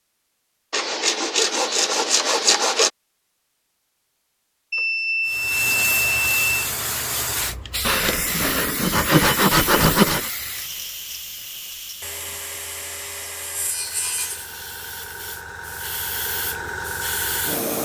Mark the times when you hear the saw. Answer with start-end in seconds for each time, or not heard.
0.7-2.9, 7.8-10.3, 12.0-14.5.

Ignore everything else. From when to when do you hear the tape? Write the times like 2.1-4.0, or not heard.
not heard.